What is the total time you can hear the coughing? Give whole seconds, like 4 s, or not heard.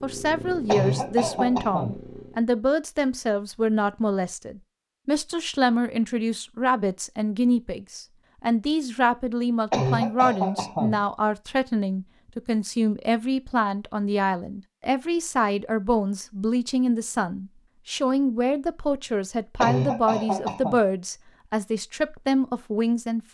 4 s.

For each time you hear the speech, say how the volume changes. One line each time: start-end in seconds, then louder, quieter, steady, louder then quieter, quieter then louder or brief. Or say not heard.
0.0-23.2 steady.